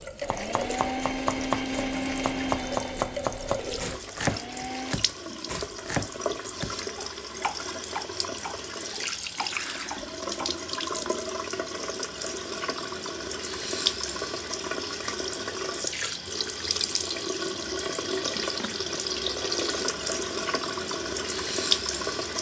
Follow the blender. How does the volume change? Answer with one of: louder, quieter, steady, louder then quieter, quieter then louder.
quieter.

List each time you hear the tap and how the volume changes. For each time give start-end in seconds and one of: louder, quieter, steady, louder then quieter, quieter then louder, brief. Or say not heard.
0.0-22.3 louder.